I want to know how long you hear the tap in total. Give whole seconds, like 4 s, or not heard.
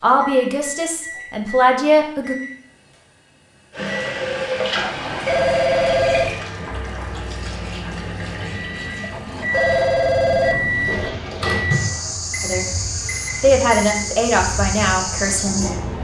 12 s.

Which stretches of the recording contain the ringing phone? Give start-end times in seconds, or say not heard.
4.8-6.4, 9.1-11.1.